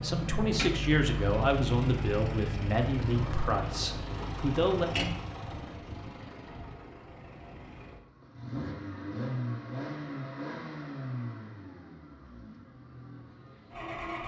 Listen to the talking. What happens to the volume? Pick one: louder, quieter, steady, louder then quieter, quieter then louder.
quieter.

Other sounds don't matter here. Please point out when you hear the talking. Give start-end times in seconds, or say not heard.
0.0-4.8.